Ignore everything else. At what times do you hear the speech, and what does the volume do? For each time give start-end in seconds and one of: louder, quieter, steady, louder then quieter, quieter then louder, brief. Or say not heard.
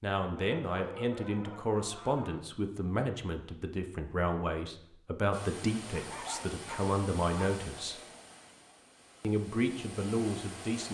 0.0-8.0 steady
9.2-10.8 brief.